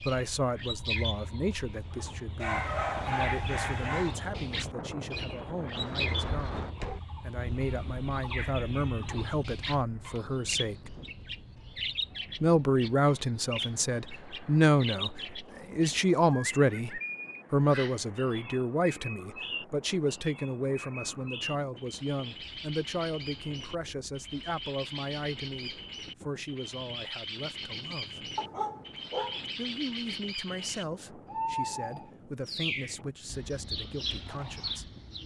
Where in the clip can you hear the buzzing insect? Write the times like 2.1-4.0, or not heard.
not heard.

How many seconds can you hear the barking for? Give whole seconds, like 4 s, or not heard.
3 s.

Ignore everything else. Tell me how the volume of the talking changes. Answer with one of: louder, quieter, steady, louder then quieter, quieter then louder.
louder then quieter.